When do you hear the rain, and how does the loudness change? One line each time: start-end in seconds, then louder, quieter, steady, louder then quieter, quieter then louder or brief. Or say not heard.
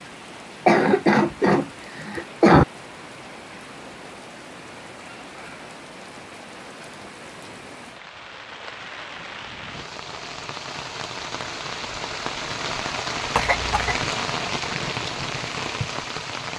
0.0-16.5 louder.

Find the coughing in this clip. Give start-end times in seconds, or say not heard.
0.7-2.6, 13.3-14.0.